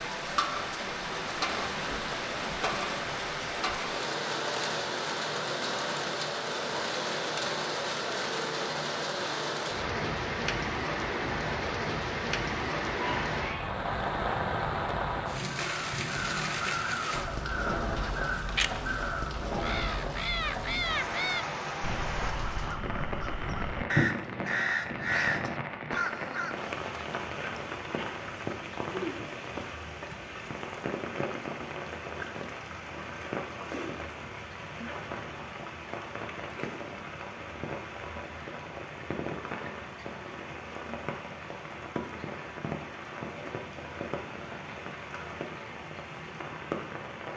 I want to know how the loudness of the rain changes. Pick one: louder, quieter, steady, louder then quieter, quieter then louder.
quieter.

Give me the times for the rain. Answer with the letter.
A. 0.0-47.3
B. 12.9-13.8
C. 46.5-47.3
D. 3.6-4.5
A.